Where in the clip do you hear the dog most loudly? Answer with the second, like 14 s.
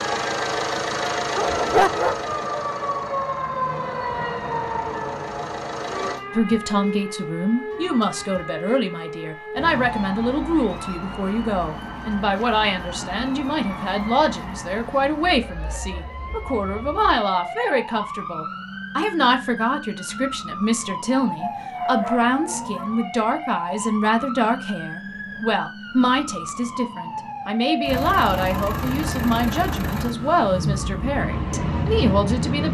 2 s.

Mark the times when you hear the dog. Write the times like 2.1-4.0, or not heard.
1.3-2.4, 21.4-22.9.